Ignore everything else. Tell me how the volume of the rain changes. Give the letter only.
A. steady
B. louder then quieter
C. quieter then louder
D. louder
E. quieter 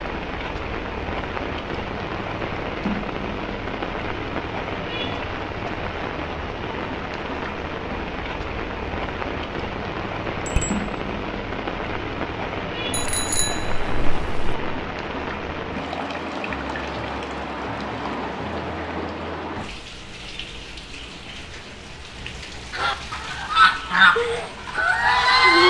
E.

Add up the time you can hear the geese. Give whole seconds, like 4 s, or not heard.
3 s.